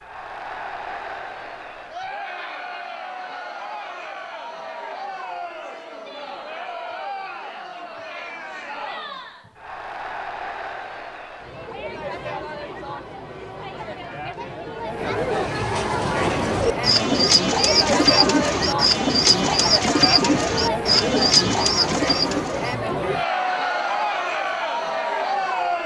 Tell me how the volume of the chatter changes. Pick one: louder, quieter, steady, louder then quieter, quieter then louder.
louder.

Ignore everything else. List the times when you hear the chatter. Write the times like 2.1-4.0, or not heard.
0.0-25.8.